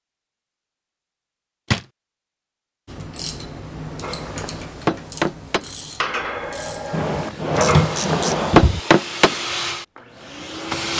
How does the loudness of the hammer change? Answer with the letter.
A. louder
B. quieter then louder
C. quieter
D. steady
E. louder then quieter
B.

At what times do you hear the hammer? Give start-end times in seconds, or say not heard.
4.0-9.4.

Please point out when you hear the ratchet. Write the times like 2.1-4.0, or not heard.
2.9-8.3.